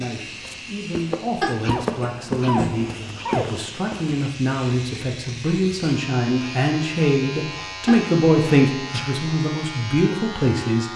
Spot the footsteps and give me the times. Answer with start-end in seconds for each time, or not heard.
0.1-4.3.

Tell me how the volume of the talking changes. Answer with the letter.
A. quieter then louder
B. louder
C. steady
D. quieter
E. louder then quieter
B.